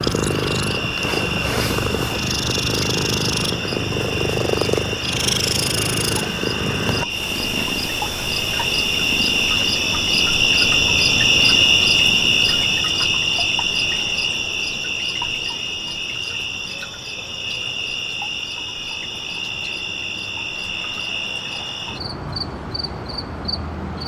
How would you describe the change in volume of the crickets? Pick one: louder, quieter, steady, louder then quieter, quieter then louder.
louder then quieter.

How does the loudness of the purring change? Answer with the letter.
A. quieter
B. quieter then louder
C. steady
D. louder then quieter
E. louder
A.